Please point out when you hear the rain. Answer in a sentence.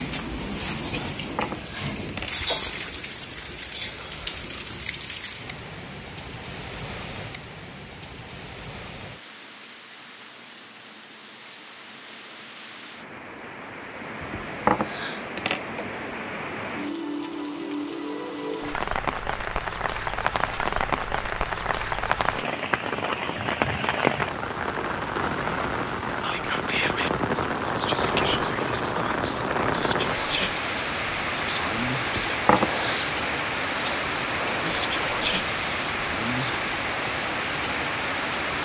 You can hear the rain from 0.0 to 38.6 s.